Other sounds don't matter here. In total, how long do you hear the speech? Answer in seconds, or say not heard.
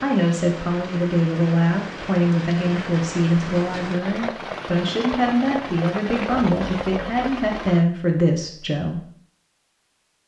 9 s.